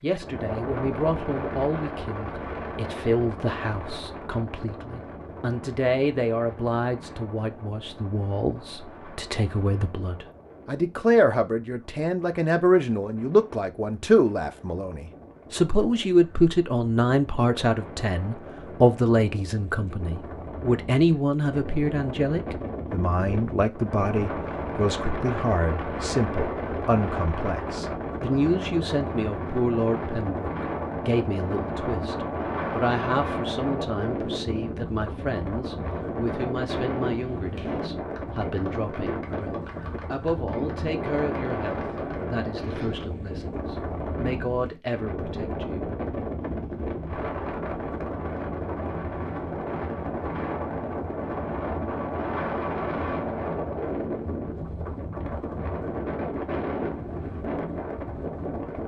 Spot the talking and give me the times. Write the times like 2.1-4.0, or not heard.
0.0-45.9.